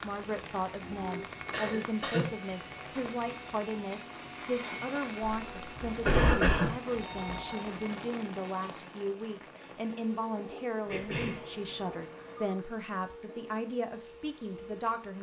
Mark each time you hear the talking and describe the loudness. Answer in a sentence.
You can hear the talking from 0.0 to 15.1 s, at a steady volume.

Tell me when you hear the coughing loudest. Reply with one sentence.
The volume of the coughing peaks at 6 seconds.